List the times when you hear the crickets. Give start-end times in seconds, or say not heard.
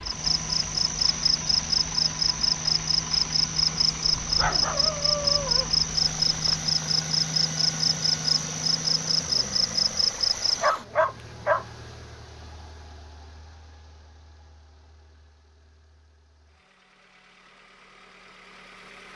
0.0-10.7.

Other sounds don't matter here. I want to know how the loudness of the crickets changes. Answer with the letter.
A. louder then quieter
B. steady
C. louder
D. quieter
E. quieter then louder
B.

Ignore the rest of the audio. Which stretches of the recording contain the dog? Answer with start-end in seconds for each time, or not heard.
4.2-6.8, 10.6-11.7.